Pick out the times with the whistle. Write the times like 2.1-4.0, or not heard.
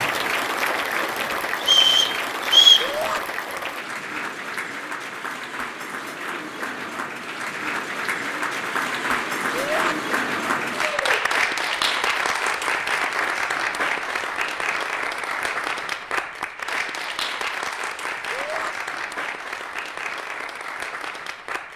1.6-2.9.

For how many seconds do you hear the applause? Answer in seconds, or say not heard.
22 s.